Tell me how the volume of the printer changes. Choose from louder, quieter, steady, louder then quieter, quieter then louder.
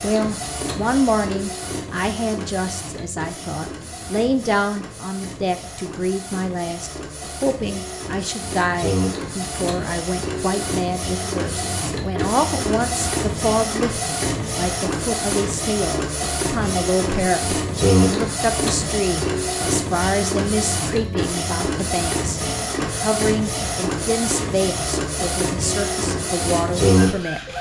louder.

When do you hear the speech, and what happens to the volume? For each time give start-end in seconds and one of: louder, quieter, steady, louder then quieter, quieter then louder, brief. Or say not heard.
0.0-27.4 steady.